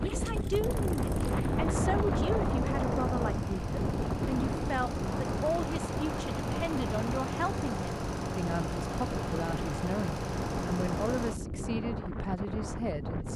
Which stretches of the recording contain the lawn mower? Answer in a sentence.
The lawn mower can be heard from 0.0 to 11.4 s.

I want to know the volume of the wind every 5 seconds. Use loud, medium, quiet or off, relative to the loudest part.
loud, medium, medium.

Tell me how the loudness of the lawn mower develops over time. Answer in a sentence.
The volume of the lawn mower goes up.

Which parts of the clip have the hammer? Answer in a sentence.
The hammer can't be heard in this clip.